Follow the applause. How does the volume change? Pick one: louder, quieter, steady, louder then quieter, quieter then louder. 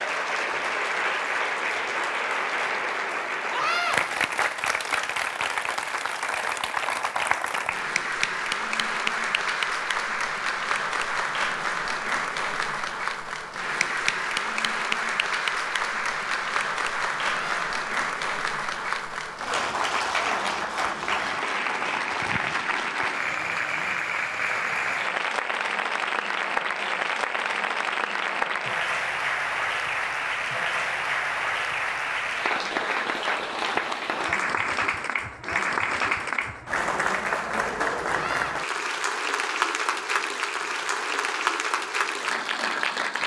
steady.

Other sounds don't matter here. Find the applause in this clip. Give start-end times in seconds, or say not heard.
0.0-43.2.